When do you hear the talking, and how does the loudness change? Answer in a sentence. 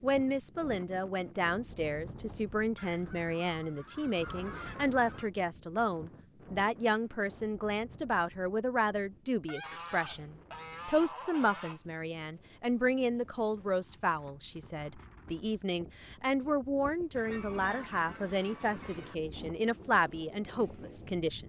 You can hear the talking from 0.0 to 21.4 s, at a steady volume.